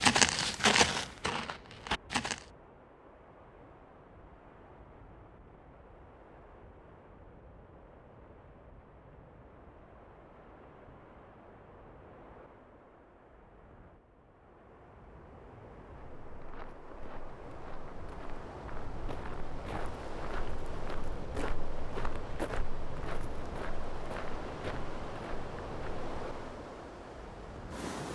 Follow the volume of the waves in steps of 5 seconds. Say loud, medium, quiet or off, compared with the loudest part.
quiet, quiet, quiet, medium, loud, loud.